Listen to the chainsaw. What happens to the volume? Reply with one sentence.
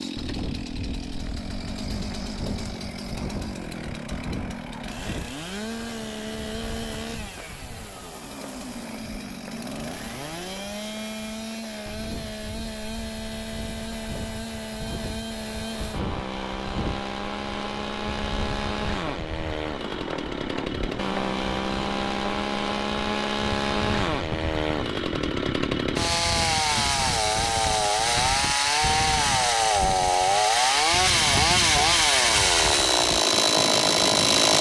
The volume of the chainsaw goes up.